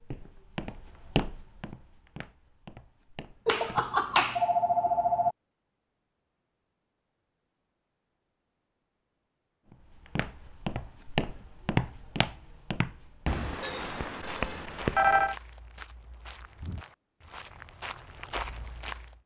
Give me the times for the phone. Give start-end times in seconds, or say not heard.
3.5-5.3, 13.2-15.3.